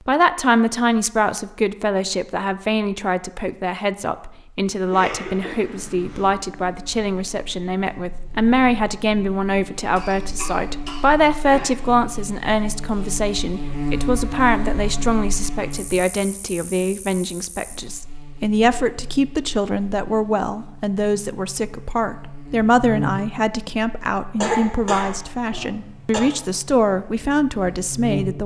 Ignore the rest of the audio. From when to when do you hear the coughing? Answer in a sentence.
The coughing can be heard from 4.9 to 6.3 s, from 9.9 to 11.8 s and from 24.4 to 26.2 s.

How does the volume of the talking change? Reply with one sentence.
The volume of the talking stays about the same.